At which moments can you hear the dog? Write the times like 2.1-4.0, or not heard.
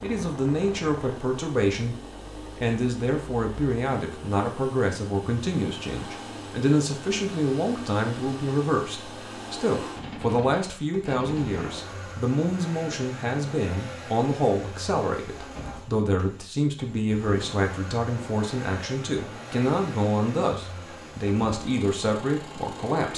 not heard.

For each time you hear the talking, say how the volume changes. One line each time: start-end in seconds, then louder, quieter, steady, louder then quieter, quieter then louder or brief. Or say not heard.
0.0-1.9 brief
2.5-23.1 steady.